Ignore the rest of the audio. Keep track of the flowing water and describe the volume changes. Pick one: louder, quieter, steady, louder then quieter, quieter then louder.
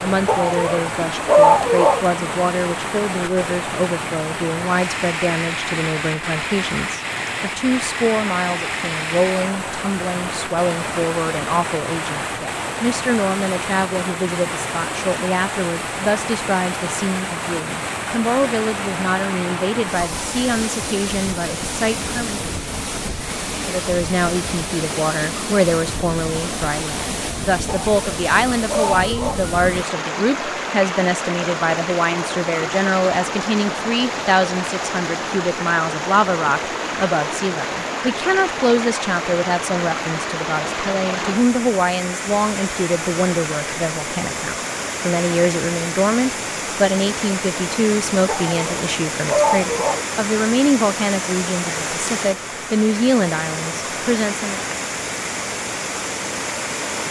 steady.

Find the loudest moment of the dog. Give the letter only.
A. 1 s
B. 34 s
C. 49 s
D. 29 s
A.